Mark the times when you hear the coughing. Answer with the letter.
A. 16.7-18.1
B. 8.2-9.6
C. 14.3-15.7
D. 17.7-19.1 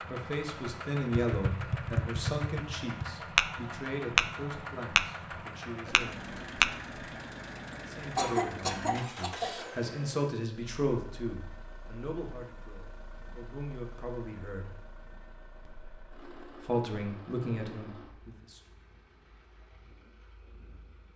B.